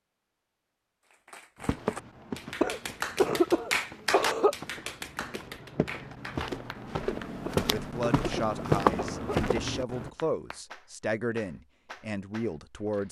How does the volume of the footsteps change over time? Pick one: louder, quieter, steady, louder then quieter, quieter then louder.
quieter then louder.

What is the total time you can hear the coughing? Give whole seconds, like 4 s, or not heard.
4 s.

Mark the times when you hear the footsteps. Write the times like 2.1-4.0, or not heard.
1.6-10.1.